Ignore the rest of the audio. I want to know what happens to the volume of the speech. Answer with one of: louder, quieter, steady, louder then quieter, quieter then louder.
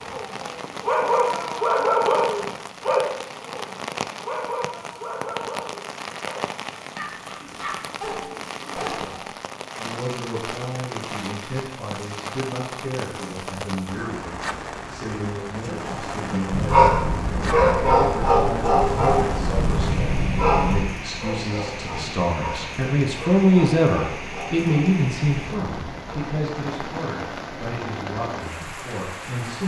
louder then quieter.